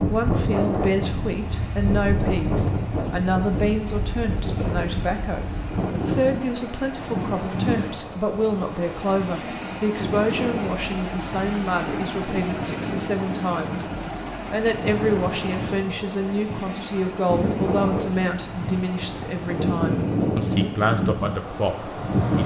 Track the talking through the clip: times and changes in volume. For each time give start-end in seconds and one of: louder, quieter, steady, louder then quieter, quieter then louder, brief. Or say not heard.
0.0-22.4 steady.